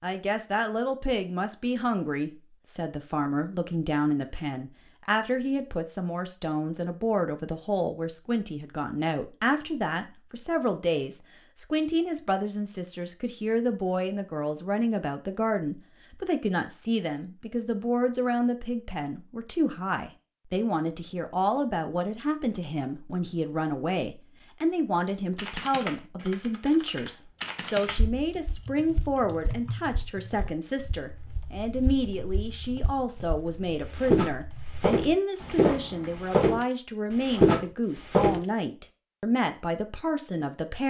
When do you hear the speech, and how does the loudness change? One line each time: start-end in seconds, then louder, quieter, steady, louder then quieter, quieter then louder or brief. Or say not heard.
0.0-40.8 steady.